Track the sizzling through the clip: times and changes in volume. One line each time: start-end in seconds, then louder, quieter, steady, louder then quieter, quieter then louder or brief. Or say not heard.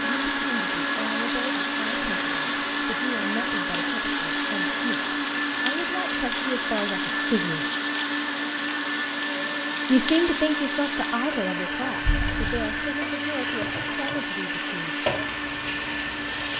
0.0-16.5 steady.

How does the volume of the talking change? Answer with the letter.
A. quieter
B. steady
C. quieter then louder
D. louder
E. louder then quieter
E.